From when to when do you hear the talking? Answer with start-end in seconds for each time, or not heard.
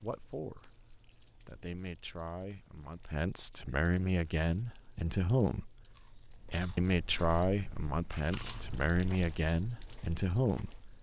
0.0-0.8, 1.4-5.8, 6.5-10.8.